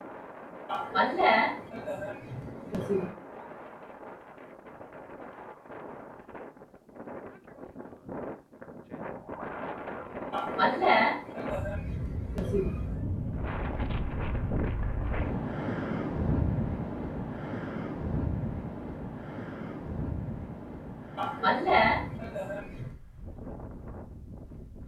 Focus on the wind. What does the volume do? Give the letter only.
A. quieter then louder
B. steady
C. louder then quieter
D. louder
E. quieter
C.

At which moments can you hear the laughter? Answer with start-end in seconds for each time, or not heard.
0.7-3.1, 10.3-12.9, 21.1-22.9.